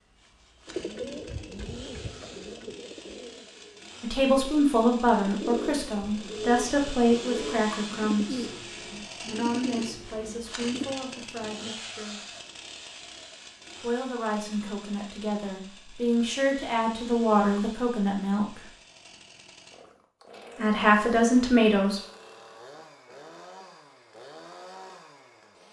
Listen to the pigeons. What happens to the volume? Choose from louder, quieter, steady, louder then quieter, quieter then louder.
quieter then louder.